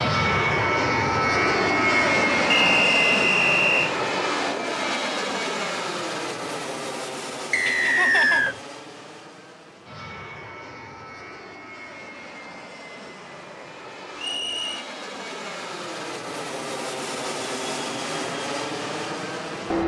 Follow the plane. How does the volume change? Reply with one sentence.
The loudness of the plane goes down, then up.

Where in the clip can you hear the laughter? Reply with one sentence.
The laughter can be heard from 7.7 to 8.6 s.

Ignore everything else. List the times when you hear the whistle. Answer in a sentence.
You can hear the whistle from 2.5 to 3.9 s, from 7.5 to 8.6 s and from 14.2 to 14.8 s.